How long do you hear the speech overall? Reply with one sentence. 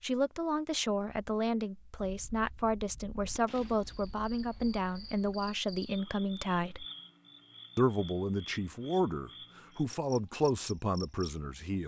The speech can be heard for 11 seconds in total.